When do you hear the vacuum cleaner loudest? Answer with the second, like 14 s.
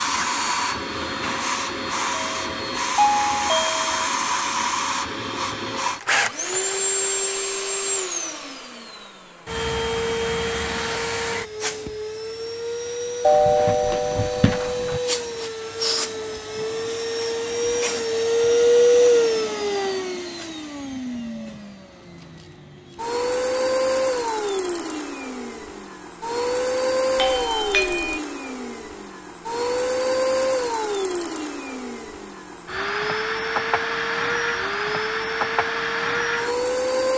19 s.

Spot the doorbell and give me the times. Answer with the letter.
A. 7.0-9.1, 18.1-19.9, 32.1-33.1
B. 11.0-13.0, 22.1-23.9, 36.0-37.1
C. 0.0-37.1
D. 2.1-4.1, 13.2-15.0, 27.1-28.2
D.